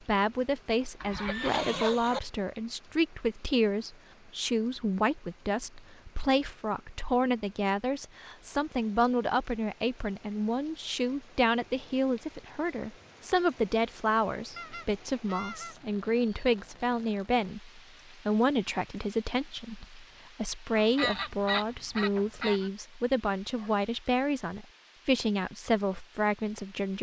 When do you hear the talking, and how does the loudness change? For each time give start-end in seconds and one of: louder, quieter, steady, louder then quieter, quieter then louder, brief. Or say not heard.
0.1-26.9 steady.